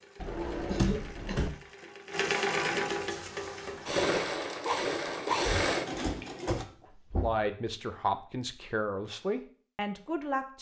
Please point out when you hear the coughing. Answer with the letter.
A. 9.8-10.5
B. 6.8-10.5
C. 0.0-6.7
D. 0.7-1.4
D.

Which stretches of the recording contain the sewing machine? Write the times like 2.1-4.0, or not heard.
0.0-6.7.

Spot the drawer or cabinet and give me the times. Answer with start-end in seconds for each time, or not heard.
0.2-1.5, 5.4-7.5.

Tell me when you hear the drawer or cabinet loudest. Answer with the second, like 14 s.
1 s.